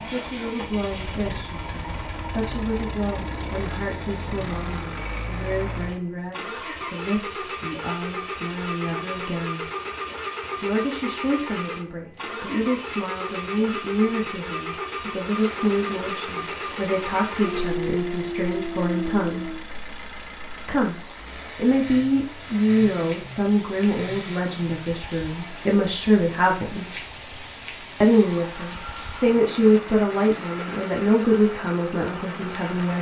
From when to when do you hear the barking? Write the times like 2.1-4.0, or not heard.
17.4-19.7.